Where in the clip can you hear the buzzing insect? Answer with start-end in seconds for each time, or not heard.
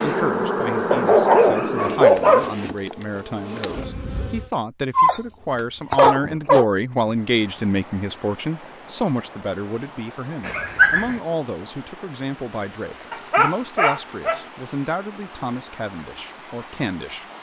0.0-4.5.